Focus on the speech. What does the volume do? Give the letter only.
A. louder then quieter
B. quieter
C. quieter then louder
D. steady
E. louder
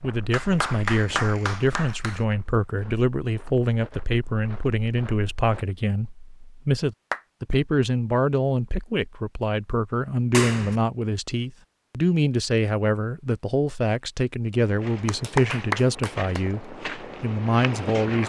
D.